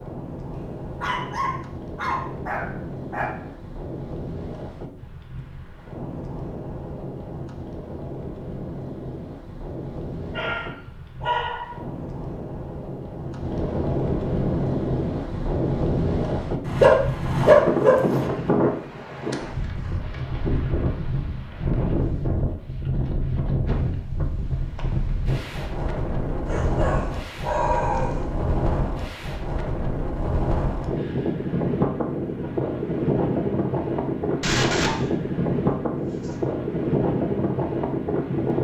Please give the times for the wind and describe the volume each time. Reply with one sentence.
You can hear the wind from 0.0 to 38.5 s, getting louder.